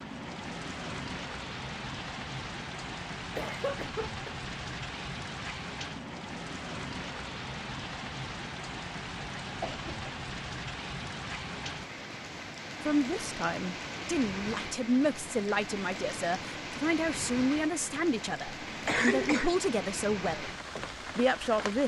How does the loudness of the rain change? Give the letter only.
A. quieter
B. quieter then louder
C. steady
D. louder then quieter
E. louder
C.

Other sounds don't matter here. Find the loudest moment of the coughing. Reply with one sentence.
The loudest moment of the coughing is at 19 seconds.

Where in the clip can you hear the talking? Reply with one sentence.
The talking can be heard from 12.8 to 20.5 s and from 21.1 to 21.8 s.